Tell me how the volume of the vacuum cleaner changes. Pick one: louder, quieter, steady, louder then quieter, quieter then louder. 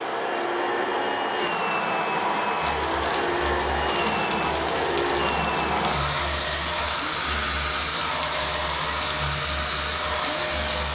steady.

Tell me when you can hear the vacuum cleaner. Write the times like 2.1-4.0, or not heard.
0.0-10.9.